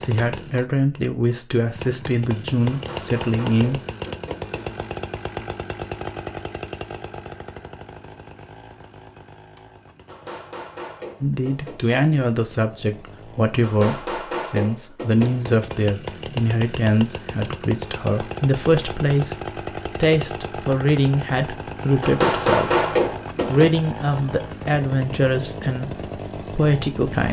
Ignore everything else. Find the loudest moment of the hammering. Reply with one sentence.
The volume of the hammering peaks at 23 seconds.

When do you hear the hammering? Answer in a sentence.
The hammering can be heard from 2.7 to 4.7 s, from 10.1 to 12.0 s, from 13.6 to 15.6 s and from 22.0 to 23.7 s.